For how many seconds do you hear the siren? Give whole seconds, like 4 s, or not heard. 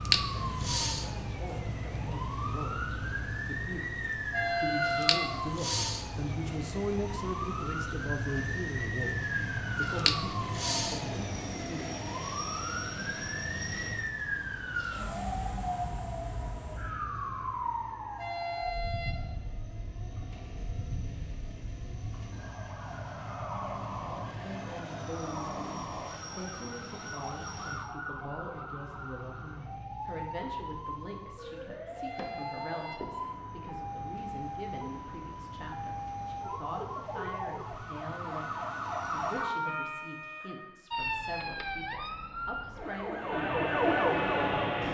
45 s.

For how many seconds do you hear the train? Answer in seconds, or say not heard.
41 s.